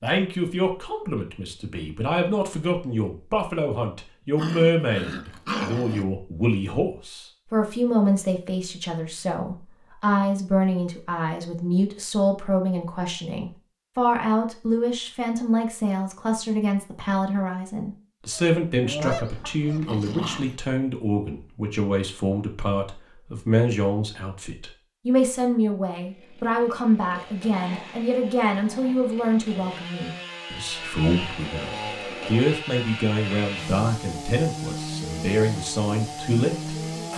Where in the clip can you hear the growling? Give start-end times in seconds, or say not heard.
4.3-6.0, 19.1-20.6, 27.5-28.9.